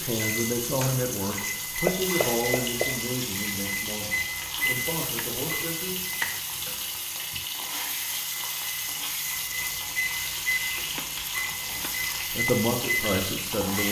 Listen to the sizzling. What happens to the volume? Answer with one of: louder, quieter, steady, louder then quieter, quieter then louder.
steady.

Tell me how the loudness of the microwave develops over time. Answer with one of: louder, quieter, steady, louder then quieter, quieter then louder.
quieter then louder.